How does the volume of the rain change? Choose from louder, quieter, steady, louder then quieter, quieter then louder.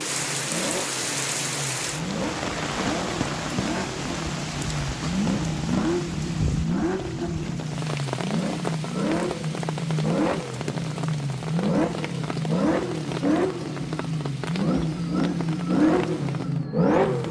quieter.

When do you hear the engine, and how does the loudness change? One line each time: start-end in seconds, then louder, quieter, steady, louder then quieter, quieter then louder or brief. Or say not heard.
0.0-17.2 louder.